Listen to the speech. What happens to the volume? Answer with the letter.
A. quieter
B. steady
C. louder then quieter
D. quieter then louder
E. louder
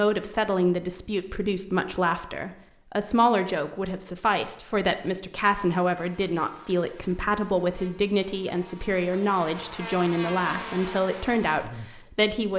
B.